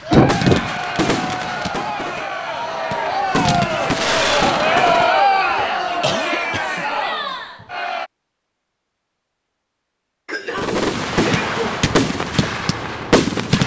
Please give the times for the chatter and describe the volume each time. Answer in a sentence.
You can hear the chatter from 0.0 to 8.1 s, getting louder then quieter.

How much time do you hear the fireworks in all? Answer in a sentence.
You can hear the fireworks for 8 seconds altogether.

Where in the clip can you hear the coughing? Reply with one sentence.
The coughing can be heard from 0.1 to 0.7 s, from 5.5 to 6.8 s and from 10.2 to 11.8 s.